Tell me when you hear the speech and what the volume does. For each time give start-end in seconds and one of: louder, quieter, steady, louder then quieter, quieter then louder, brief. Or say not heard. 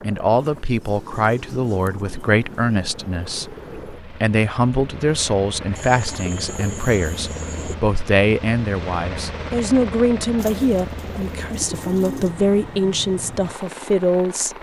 0.0-14.5 steady.